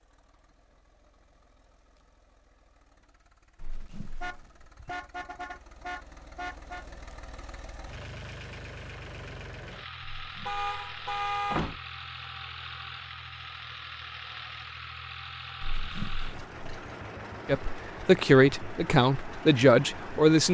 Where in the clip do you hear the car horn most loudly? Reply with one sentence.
The volume of the car horn peaks at 11 seconds.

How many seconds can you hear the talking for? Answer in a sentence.
The talking can be heard for 3 seconds in total.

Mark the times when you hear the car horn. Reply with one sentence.
The car horn can be heard from 4.2 to 6.8 s and from 10.4 to 11.7 s.